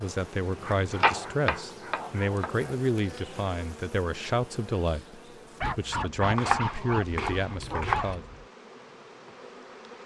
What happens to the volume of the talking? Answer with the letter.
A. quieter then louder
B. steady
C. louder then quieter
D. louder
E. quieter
B.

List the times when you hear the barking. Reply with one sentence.
You can hear the barking from 0.6 to 2.3 s and from 5.6 to 8.4 s.